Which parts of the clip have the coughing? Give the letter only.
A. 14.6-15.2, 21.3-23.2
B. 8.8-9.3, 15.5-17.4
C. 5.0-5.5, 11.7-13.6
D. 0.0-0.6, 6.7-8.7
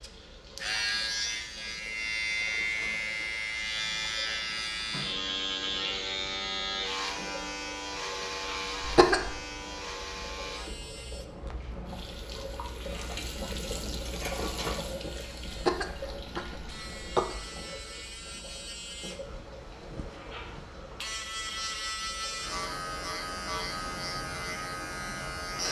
B.